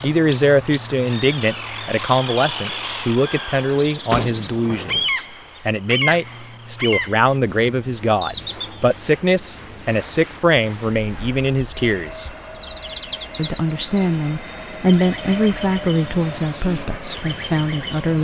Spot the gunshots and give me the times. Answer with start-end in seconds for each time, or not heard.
4.1-5.1.